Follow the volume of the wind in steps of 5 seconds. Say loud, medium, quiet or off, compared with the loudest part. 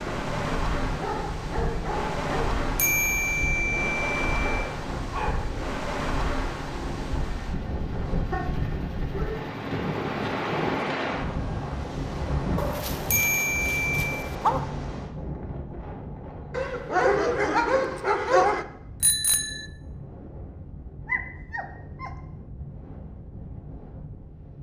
loud, loud, loud, medium, quiet.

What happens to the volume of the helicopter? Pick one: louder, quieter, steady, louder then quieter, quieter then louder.
steady.